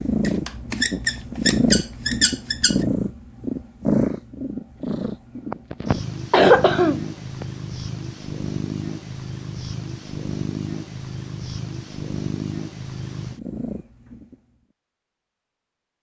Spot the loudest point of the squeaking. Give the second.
2 s.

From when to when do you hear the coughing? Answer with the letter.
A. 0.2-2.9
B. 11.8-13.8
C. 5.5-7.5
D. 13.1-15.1
C.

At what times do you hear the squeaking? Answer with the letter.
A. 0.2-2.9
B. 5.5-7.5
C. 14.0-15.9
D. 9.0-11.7
A.